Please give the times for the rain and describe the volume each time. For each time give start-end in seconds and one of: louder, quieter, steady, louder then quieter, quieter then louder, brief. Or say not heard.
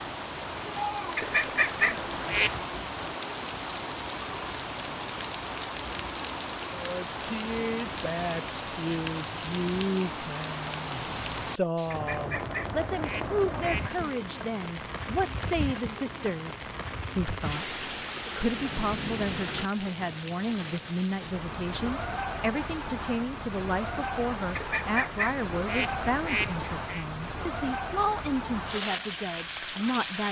0.0-30.2 steady.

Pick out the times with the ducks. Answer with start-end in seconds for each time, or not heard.
1.1-2.6, 11.9-13.9, 24.6-27.1.